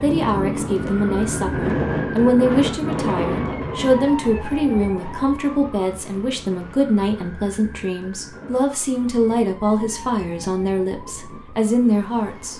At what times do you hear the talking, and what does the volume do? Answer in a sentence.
The talking can be heard from 0.0 to 12.5 s, at a steady volume.